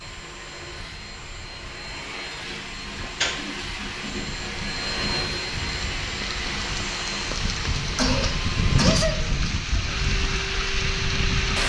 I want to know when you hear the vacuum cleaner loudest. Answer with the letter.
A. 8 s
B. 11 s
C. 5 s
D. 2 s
C.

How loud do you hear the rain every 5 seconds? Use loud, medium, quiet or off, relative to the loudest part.
quiet, loud, loud.